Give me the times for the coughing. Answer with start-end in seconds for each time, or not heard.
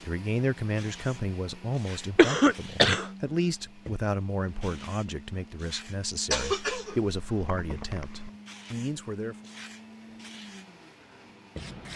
2.1-3.0, 6.3-8.3.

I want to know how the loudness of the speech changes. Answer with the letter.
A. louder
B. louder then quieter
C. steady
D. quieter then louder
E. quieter
C.